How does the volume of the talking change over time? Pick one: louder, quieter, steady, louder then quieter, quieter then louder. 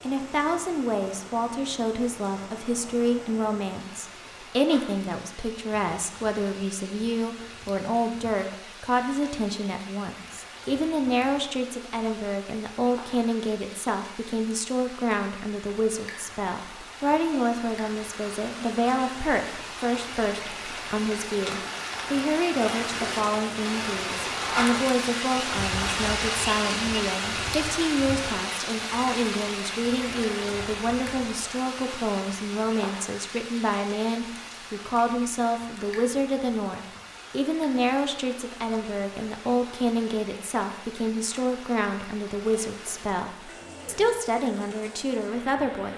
steady.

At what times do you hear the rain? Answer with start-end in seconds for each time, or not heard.
0.0-45.9.